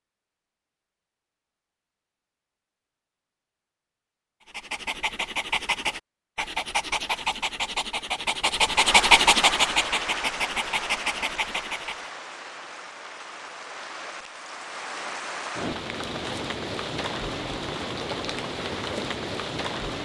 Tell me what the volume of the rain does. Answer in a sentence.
The loudness of the rain goes down, then up.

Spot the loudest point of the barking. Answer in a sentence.
The loudest moment of the barking is at 9 seconds.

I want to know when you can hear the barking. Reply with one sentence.
You can hear the barking from 4.5 to 12.1 s.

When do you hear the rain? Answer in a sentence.
You can hear the rain from 8.6 to 20.0 s.